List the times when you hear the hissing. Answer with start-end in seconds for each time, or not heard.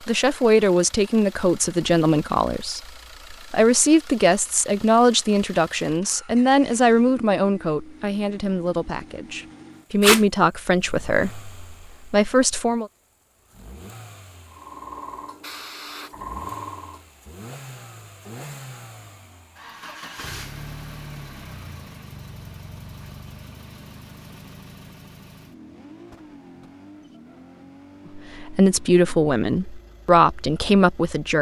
14.5-17.0.